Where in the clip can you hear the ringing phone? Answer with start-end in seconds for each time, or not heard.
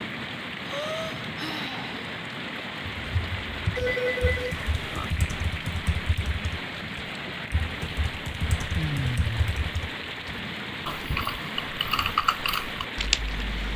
3.8-5.2.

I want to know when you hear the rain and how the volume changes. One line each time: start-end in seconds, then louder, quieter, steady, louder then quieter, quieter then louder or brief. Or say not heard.
0.0-13.7 steady.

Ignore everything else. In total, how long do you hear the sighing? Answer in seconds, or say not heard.
2 s.